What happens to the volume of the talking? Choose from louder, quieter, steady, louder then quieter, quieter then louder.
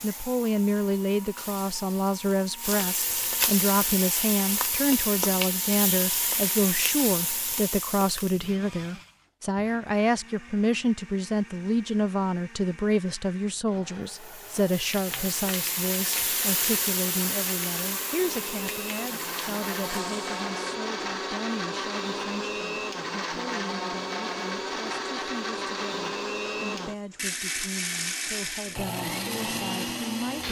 quieter.